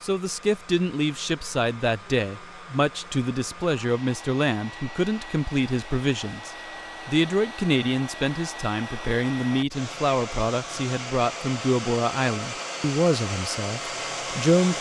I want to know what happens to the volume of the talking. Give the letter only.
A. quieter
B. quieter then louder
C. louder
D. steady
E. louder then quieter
D.